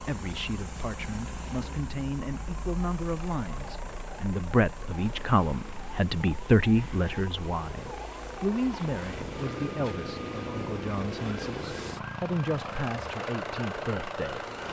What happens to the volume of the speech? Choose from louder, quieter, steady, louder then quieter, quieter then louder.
louder then quieter.